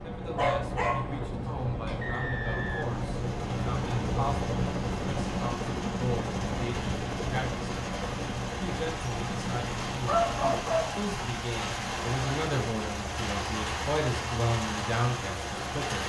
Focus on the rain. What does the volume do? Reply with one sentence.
The volume of the rain goes up.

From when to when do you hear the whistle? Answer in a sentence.
You can hear the whistle from 2.0 to 3.0 s.